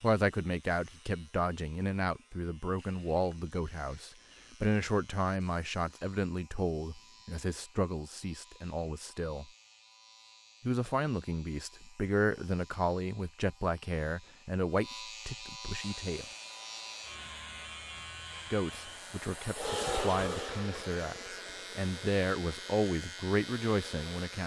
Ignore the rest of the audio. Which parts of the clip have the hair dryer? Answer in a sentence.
The hair dryer can be heard from 15.8 to 24.3 s.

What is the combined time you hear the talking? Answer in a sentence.
The talking can be heard for 21 seconds in total.